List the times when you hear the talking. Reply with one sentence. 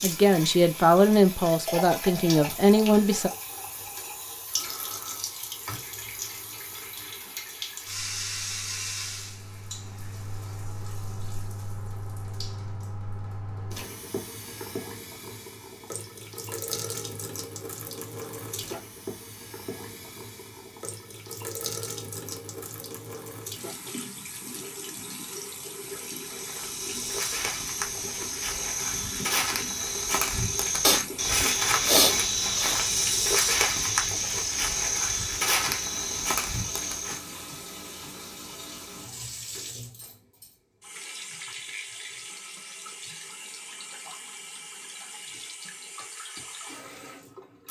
You can hear the talking from 0.0 to 3.3 s.